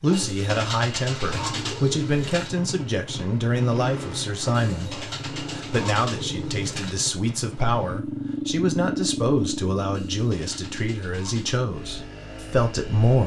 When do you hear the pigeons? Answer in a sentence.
You can hear the pigeons from 0.1 to 2.5 s, from 4.5 to 7.0 s and from 9.9 to 11.6 s.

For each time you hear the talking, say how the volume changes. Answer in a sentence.
The talking can be heard from 0.0 to 13.2 s, at a steady volume.